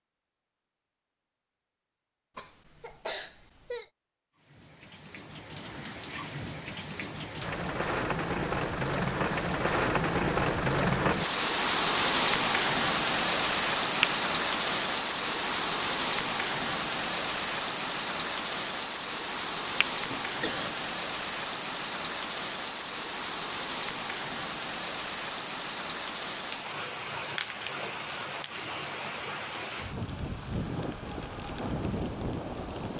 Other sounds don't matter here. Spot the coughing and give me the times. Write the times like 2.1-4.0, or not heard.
2.4-3.9, 19.9-20.9.